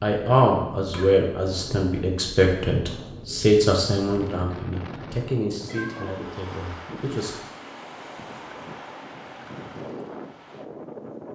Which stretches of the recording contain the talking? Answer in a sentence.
You can hear the talking from 0.0 to 7.3 s.